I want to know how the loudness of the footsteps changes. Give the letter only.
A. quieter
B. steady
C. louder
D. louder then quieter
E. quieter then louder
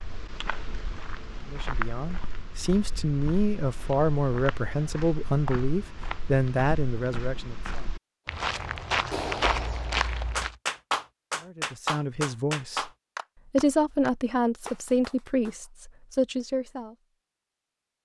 E.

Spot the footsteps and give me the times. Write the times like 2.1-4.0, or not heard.
0.0-10.6.